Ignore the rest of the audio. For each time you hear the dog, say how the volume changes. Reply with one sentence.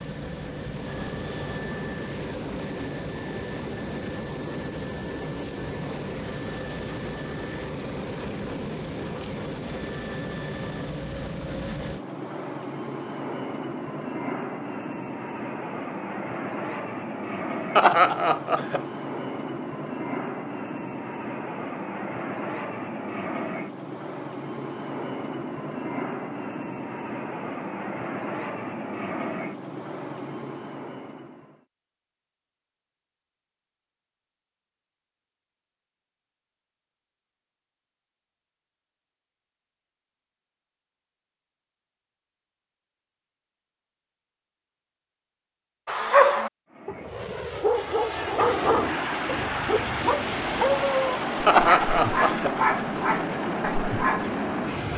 The dog can be heard from 45.9 to 54.2 s, at a steady volume.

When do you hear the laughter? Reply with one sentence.
The laughter can be heard from 17.8 to 18.9 s and from 51.5 to 52.5 s.